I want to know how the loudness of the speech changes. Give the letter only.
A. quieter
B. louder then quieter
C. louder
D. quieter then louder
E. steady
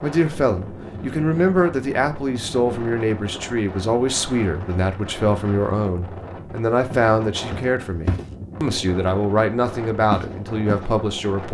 E.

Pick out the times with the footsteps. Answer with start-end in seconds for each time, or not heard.
6.9-8.2, 10.1-10.9.